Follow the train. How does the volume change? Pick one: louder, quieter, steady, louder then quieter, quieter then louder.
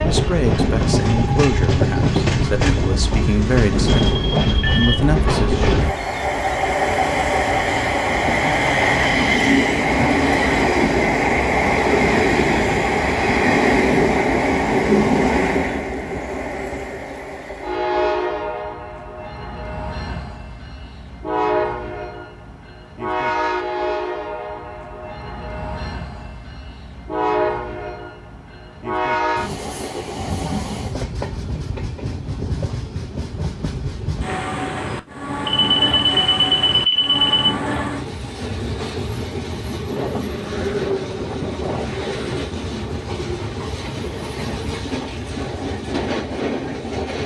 quieter.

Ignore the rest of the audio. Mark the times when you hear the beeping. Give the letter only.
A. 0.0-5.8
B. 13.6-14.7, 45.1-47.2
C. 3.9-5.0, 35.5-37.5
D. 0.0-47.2
C.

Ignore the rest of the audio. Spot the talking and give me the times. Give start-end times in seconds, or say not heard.
0.0-5.8.